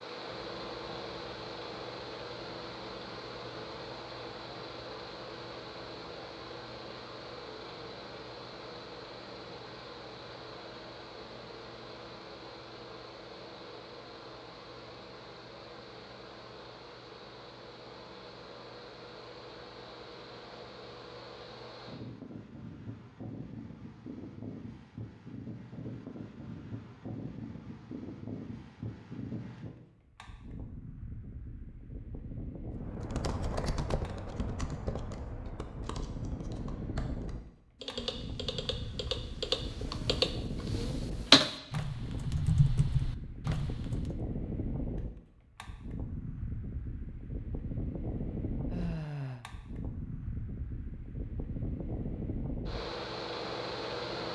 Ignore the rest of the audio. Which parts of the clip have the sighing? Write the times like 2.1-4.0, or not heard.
48.7-49.5.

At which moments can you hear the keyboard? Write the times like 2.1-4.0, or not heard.
32.9-44.2.